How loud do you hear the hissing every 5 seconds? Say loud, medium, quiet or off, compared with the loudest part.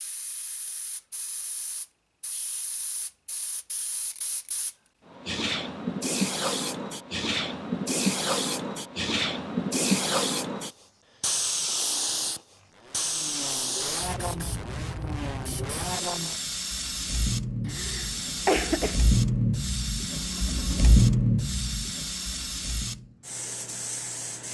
quiet, loud, loud, medium, medium.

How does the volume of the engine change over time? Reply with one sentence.
The volume of the engine goes up.